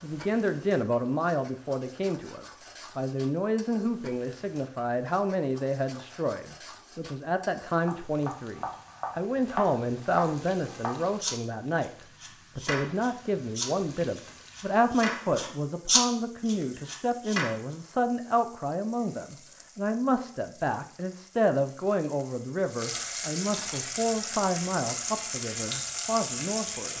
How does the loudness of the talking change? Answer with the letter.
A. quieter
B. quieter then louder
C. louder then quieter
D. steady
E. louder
D.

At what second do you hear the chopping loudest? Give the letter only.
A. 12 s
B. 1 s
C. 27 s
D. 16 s
D.